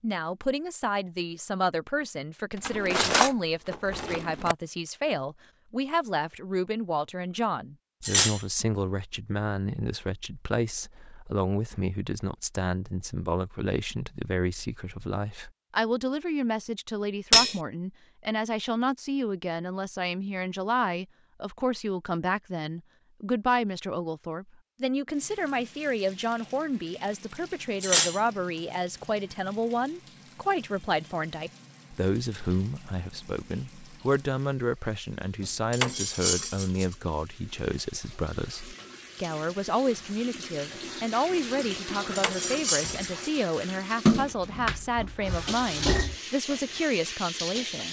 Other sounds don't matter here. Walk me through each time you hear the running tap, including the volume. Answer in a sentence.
You can hear the running tap from 25.1 to 47.8 s, getting louder.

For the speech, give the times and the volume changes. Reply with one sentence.
The speech can be heard from 0.0 to 47.8 s, at a steady volume.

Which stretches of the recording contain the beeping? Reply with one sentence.
The beeping can't be heard in this clip.